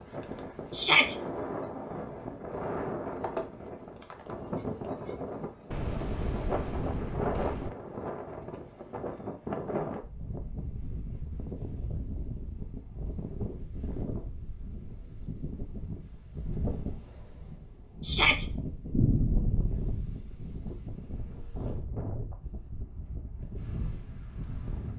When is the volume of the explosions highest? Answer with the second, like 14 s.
19 s.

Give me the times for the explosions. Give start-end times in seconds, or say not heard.
5.7-7.7, 18.9-20.1.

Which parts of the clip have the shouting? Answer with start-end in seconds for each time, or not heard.
0.7-1.1, 18.0-18.5.